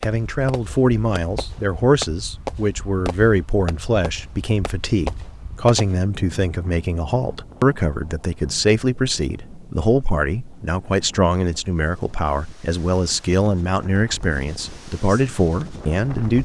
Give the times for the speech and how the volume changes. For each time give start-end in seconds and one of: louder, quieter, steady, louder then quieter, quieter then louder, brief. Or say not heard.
0.0-16.4 steady.